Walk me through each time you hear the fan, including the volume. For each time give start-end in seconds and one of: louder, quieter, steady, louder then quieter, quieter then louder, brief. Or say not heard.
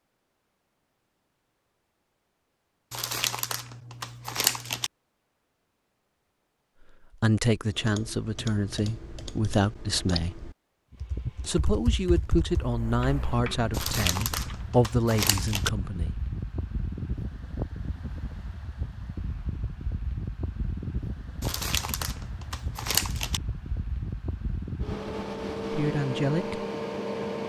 10.9-27.4 louder.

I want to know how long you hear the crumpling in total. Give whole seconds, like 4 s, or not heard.
6 s.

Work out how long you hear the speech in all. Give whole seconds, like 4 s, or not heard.
9 s.